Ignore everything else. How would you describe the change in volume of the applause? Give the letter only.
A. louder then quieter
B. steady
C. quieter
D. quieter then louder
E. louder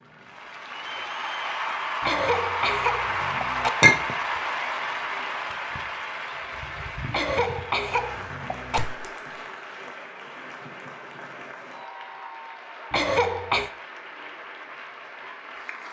C.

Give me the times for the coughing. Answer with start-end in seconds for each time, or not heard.
2.0-3.7, 7.1-8.8, 12.9-13.7.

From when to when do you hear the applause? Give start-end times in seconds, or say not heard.
0.0-15.8.